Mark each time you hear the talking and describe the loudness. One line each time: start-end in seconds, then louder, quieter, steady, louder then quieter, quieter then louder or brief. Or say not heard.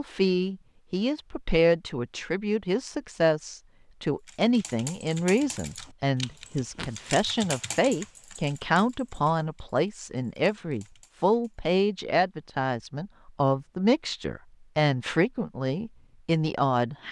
0.0-17.0 steady.